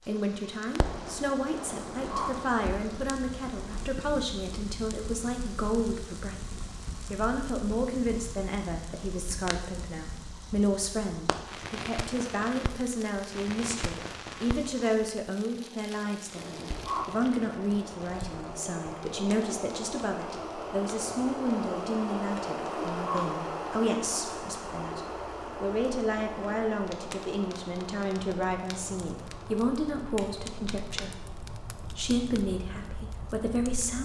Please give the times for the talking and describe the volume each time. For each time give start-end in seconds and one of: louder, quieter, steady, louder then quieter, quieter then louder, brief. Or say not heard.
0.1-33.9 steady.